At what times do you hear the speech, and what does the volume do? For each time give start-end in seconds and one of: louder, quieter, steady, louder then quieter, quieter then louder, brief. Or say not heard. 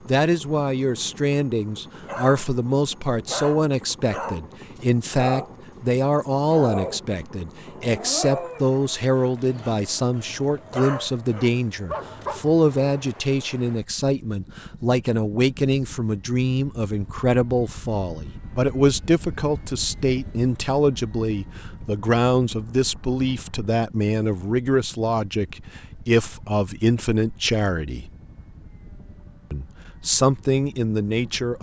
0.1-28.1 steady
29.5-31.5 brief.